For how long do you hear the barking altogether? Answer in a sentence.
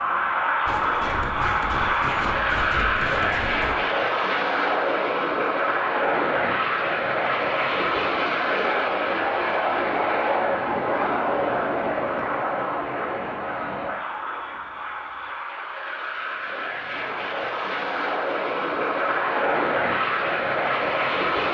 The barking can't be heard in this clip.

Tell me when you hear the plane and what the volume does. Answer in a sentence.
The plane can be heard from 0.0 to 21.5 s, getting quieter then louder.